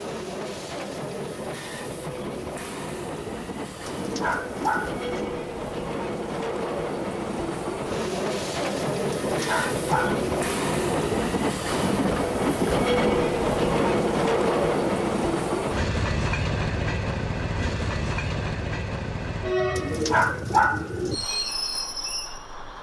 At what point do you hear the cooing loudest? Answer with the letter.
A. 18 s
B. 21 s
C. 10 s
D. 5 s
B.